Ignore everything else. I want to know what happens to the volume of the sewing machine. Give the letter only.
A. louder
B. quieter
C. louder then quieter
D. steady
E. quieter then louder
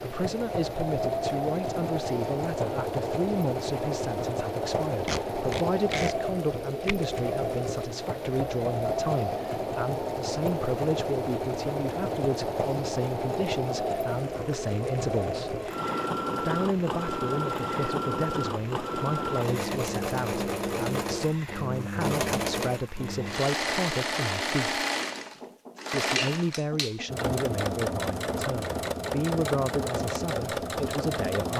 D.